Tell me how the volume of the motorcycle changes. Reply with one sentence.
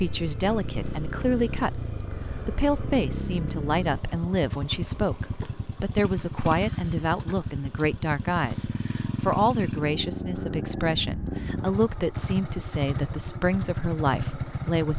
The loudness of the motorcycle stays about the same.